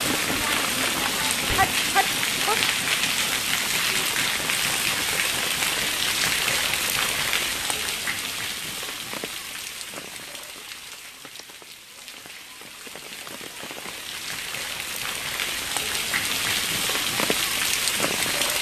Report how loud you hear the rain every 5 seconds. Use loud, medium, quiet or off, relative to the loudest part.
loud, loud, quiet, loud.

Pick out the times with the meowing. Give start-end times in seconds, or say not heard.
1.4-2.6.